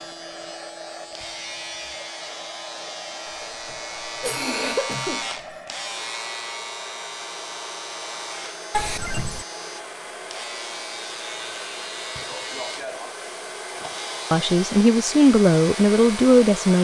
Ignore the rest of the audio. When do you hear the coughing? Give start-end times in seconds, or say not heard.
3.2-5.5, 8.7-9.4.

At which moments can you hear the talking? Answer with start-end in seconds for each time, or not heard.
14.3-16.7.